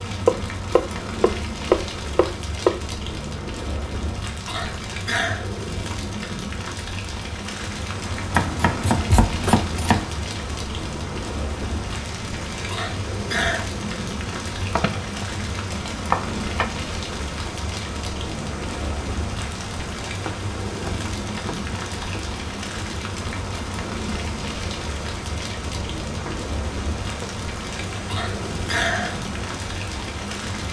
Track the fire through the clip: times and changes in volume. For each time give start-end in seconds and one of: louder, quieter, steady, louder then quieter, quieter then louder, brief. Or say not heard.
0.0-30.6 steady.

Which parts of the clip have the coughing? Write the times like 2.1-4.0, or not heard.
4.5-5.5, 12.7-13.7, 28.1-29.2.